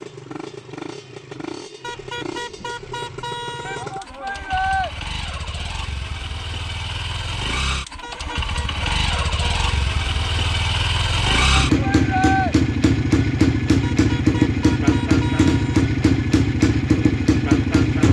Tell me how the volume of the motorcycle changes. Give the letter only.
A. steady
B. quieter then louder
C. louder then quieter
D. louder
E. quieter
D.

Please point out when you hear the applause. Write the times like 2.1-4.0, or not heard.
not heard.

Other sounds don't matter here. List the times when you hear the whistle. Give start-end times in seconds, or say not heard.
not heard.